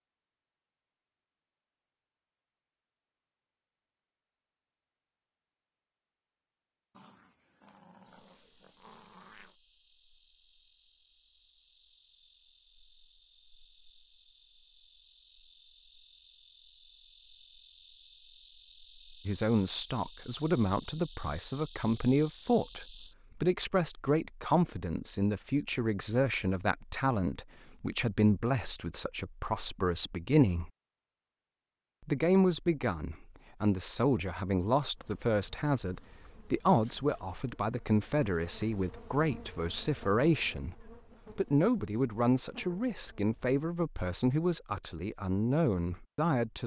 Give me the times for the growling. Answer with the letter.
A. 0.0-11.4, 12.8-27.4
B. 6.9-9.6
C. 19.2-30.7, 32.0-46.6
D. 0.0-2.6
B.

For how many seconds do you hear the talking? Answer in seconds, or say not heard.
26 s.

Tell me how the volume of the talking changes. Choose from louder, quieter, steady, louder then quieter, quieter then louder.
steady.